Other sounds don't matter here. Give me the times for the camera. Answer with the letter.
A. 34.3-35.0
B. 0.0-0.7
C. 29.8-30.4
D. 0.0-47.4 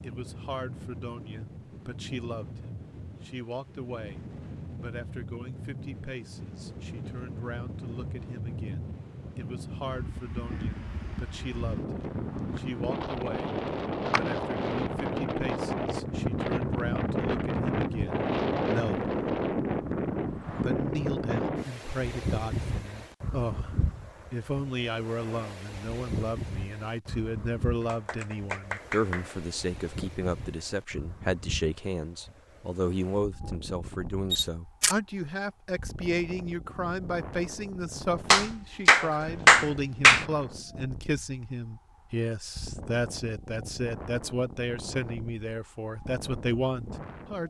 A.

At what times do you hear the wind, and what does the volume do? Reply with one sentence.
You can hear the wind from 0.0 to 47.4 s, getting louder then quieter.